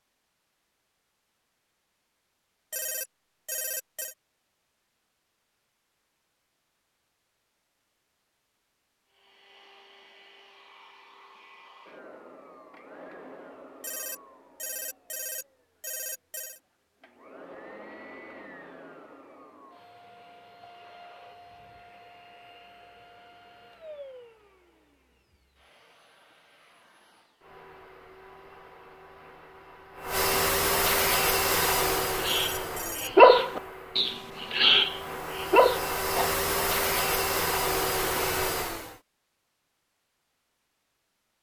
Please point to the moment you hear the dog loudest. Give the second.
33 s.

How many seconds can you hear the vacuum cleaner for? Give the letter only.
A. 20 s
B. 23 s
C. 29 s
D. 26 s
C.